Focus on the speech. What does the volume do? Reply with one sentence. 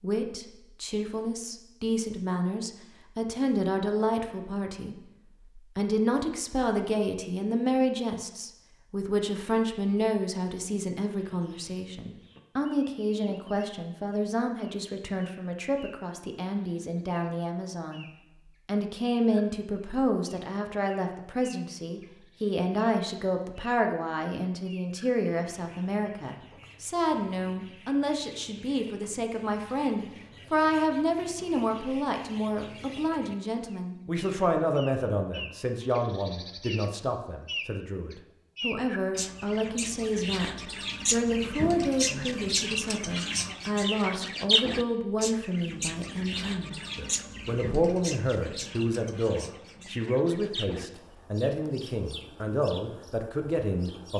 The loudness of the speech stays about the same.